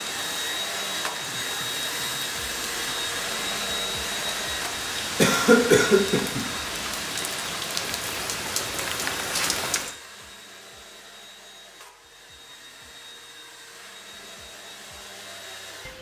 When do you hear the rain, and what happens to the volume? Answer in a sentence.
You can hear the rain from 0.0 to 9.9 s, getting louder.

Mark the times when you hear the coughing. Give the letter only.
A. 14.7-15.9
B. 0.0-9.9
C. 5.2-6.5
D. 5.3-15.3
C.